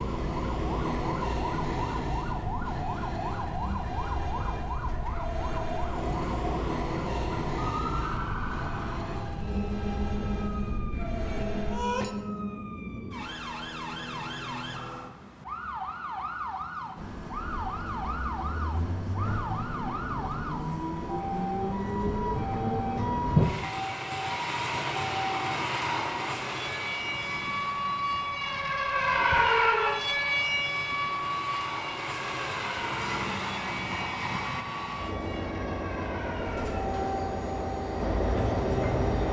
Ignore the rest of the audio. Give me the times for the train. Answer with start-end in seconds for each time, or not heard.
0.0-12.1, 16.9-39.2.